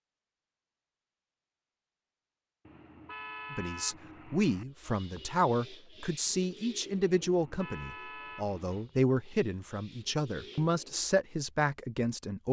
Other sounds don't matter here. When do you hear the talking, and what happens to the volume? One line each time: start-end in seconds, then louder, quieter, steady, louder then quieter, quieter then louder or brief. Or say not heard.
3.5-12.4 steady.